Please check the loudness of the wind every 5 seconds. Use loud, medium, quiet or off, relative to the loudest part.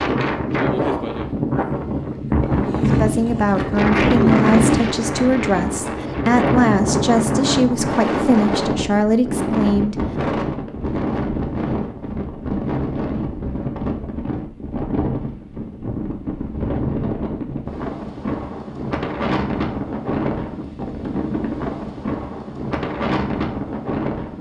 loud, loud, medium, medium, medium.